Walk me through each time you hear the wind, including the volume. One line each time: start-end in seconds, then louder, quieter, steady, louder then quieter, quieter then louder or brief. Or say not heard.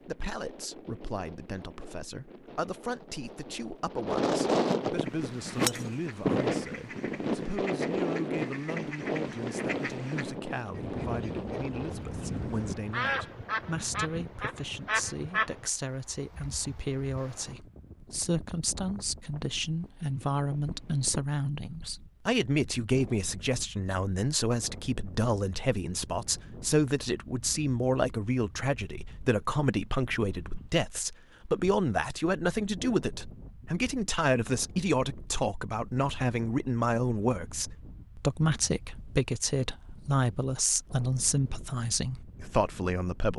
0.0-43.3 quieter.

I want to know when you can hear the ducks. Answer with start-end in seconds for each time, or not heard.
5.0-15.5.